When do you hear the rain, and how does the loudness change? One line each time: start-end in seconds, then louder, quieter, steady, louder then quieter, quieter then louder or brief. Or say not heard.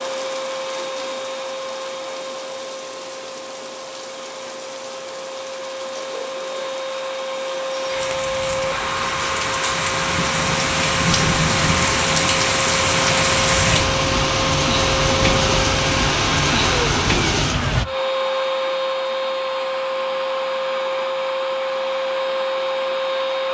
0.0-17.9 louder.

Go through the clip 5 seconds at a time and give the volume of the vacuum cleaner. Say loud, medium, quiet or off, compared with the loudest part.
medium, loud, loud, loud, loud.